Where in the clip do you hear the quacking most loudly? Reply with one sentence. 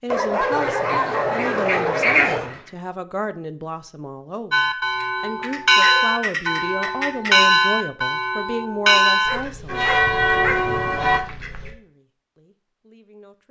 The volume of the quacking peaks at 2 seconds.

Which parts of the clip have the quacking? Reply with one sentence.
The quacking can be heard from 0.5 to 2.6 s, from 5.0 to 7.5 s and from 9.2 to 11.8 s.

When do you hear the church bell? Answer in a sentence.
You can hear the church bell from 4.5 to 11.2 s.